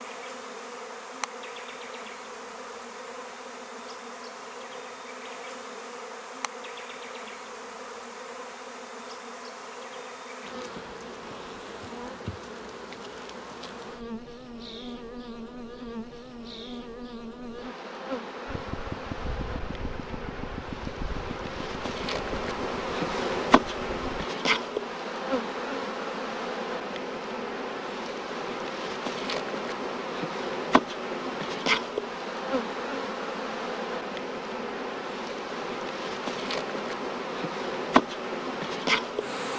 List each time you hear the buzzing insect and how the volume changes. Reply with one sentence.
The buzzing insect can be heard from 0.0 to 39.5 s, getting louder.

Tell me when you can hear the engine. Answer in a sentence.
You can hear the engine from 18.4 to 24.2 s.